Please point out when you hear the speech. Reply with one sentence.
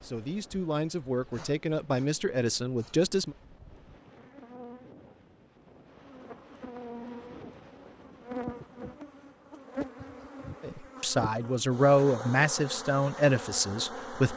You can hear the speech from 0.0 to 3.4 s and from 10.6 to 14.3 s.